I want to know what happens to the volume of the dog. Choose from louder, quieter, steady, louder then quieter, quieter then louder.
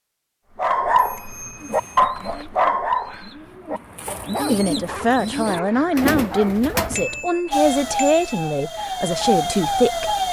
quieter.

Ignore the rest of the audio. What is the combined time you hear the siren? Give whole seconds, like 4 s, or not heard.
3 s.